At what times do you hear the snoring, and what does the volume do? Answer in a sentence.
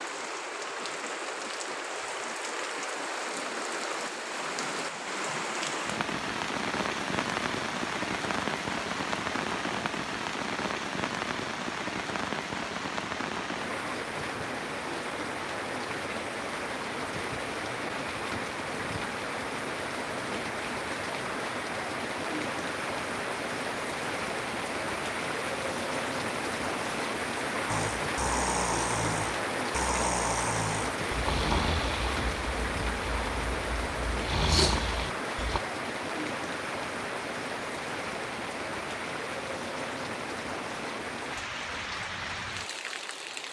The snoring can be heard from 27.6 to 35.6 s, getting quieter then louder.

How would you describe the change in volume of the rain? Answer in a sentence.
The volume of the rain stays about the same.